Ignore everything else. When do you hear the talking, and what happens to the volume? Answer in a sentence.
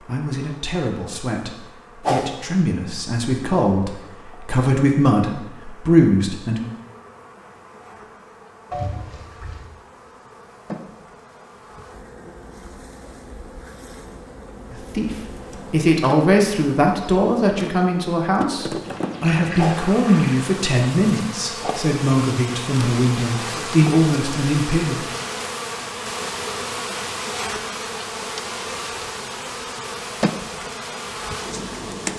You can hear the talking from 0.0 to 6.6 s, getting louder; and from 14.7 to 25.0 s, at a steady volume.